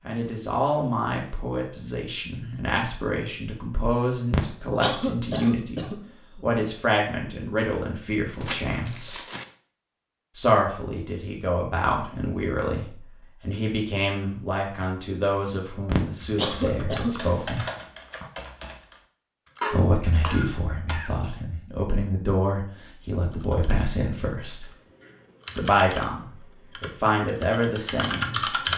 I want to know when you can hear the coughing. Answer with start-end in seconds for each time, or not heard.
4.3-6.0, 15.9-17.2, 19.6-21.1.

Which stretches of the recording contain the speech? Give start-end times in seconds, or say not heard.
0.0-9.2, 10.3-17.6, 19.7-24.7, 25.6-28.6.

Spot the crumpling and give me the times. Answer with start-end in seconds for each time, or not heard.
8.4-9.6.